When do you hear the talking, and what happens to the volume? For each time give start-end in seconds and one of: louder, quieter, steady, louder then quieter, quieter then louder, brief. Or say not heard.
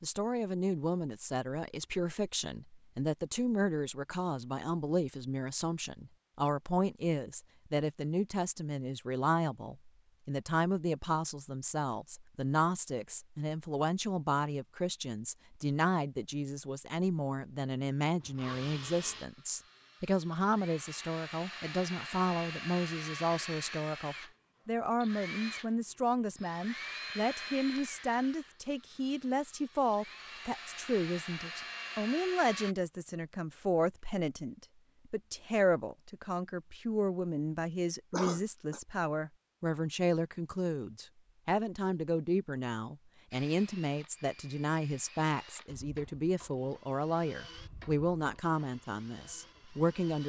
0.0-50.2 steady.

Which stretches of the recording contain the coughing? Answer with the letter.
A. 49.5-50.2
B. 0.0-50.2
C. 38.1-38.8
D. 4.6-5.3
C.